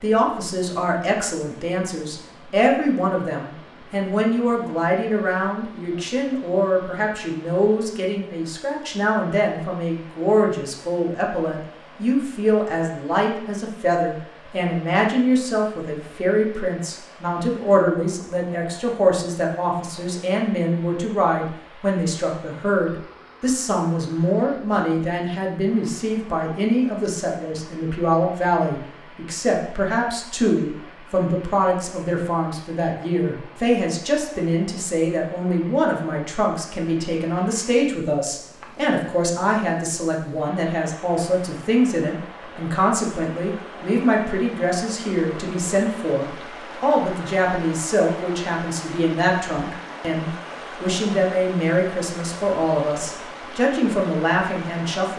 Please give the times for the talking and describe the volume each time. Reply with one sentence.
The talking can be heard from 0.0 to 55.1 s, at a steady volume.